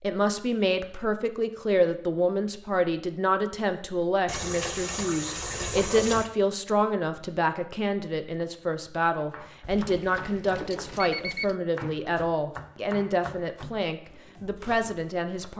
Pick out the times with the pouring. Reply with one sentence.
The pouring can be heard from 4.2 to 6.3 s and from 9.8 to 10.9 s.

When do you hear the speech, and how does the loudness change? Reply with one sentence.
You can hear the speech from 0.0 to 15.5 s, at a steady volume.